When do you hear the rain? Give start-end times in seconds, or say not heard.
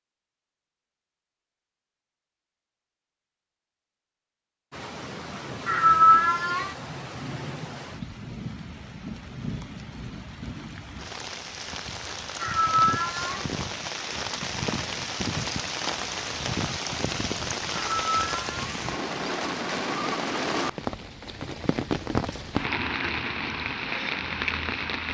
4.7-25.0.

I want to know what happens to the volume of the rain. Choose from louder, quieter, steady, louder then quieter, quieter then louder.
louder.